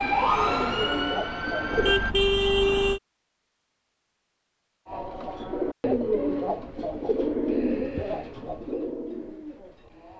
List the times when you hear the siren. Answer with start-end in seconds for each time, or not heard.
0.0-2.1.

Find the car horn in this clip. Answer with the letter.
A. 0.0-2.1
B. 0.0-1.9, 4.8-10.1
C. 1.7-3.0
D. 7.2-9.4
C.